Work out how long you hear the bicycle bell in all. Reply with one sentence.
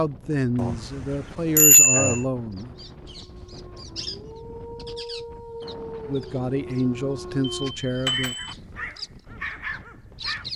You can hear the bicycle bell for 3 seconds altogether.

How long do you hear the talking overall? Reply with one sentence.
You can hear the talking for 5 seconds altogether.